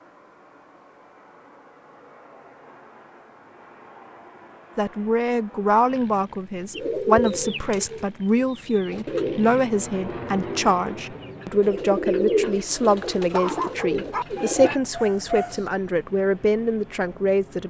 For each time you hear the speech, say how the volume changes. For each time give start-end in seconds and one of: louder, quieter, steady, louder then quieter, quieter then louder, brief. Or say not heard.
4.8-17.6 steady.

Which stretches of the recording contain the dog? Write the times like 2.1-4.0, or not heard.
13.1-15.7.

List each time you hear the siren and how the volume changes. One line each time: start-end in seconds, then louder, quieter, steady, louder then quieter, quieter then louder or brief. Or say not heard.
not heard.